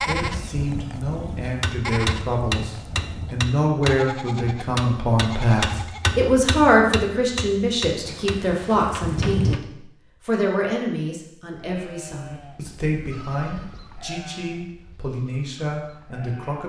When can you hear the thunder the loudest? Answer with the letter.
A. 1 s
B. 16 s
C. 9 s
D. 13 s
C.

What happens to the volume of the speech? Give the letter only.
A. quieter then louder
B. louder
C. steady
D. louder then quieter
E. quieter
D.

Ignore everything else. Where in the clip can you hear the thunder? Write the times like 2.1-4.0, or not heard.
8.1-9.6.